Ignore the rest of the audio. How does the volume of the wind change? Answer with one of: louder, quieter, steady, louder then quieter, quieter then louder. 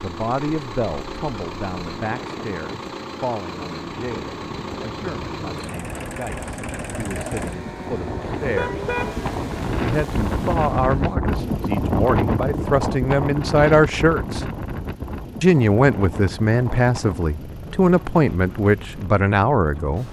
louder then quieter.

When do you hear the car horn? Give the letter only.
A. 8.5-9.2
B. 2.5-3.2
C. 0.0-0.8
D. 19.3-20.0
A.